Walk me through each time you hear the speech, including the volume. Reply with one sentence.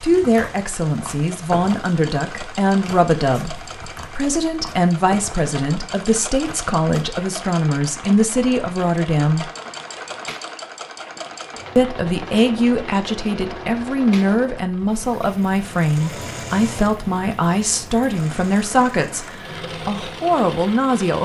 The speech can be heard from 0.0 to 9.5 s, at a steady volume; and from 11.8 to 21.2 s, at a steady volume.